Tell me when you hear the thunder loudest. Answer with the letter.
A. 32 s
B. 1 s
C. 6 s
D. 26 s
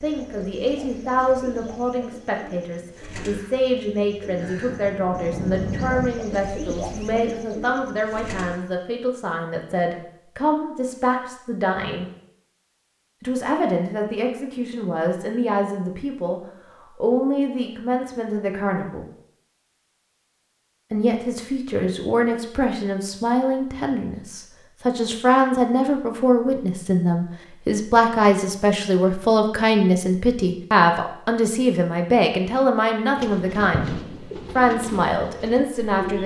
C.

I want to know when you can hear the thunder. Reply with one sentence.
The thunder can be heard from 4.4 to 6.1 s.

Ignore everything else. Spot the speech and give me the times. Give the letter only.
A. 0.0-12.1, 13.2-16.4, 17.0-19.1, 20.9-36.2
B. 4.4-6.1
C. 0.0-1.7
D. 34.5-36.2
A.